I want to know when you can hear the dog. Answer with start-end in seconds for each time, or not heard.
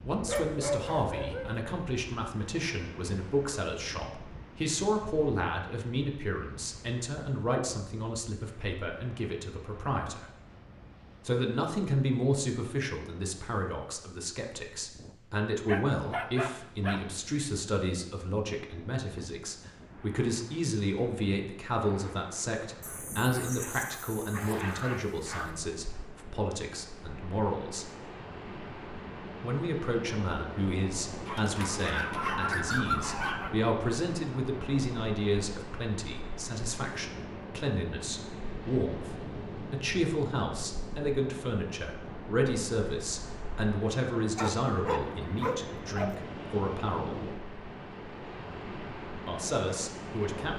0.2-1.6, 15.7-17.0, 22.8-25.6, 31.2-33.5, 44.4-46.1.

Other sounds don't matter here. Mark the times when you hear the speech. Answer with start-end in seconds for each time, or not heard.
0.0-10.3, 11.2-27.9, 29.4-47.1, 49.2-50.5.